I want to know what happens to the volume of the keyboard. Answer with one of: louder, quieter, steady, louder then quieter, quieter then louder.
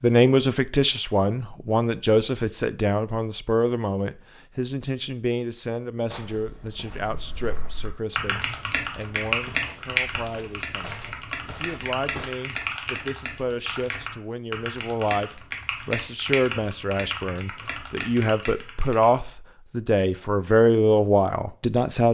quieter.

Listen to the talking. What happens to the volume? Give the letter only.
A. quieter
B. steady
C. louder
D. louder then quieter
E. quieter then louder
E.